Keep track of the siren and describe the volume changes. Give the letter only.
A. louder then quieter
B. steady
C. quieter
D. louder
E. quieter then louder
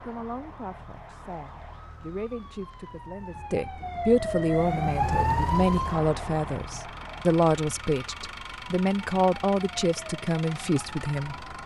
A.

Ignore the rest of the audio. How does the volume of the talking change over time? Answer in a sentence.
The loudness of the talking goes up.